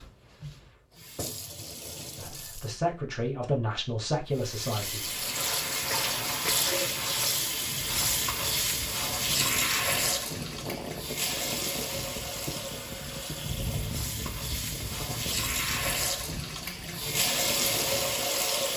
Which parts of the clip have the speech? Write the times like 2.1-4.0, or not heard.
2.1-5.1.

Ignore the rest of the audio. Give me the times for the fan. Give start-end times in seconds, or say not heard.
7.9-18.7.